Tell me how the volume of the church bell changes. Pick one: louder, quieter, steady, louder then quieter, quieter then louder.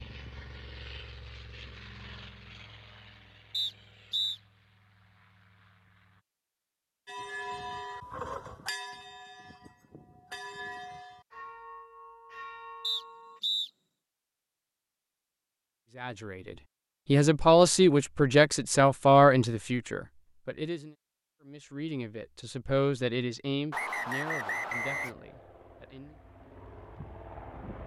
quieter.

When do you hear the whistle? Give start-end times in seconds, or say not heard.
3.5-4.4, 12.8-13.7, 23.7-25.1.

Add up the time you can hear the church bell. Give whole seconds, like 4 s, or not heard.
6 s.